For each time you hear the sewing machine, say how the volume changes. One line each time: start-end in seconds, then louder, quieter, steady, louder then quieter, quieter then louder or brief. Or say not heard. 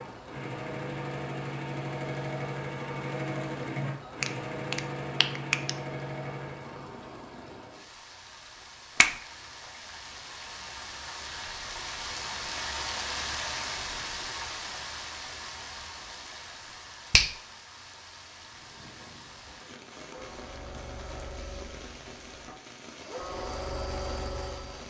0.0-7.0 steady
18.3-24.8 louder.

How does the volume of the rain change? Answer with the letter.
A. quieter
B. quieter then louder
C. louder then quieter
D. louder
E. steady
C.